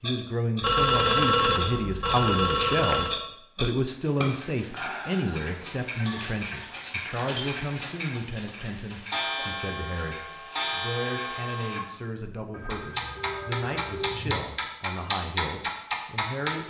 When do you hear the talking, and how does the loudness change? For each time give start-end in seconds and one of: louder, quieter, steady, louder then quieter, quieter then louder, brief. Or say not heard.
0.0-16.6 quieter.